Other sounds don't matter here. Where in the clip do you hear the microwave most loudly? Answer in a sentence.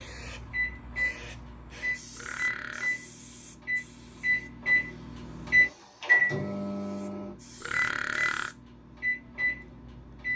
The loudest moment of the microwave is at 6 seconds.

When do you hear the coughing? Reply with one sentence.
The coughing can't be heard in this clip.